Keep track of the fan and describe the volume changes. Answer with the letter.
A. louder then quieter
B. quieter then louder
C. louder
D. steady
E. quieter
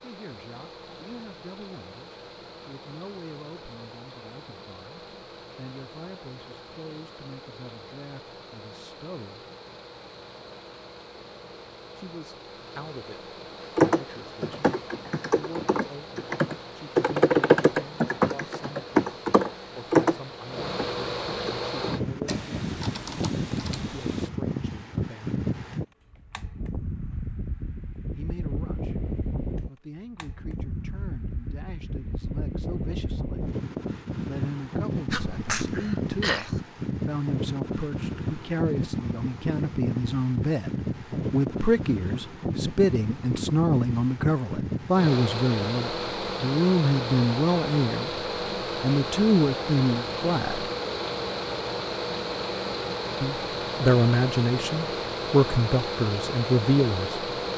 C.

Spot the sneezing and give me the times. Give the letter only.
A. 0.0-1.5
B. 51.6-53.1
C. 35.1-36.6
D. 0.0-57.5
C.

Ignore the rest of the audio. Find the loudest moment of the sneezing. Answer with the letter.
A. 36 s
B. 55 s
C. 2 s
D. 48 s
A.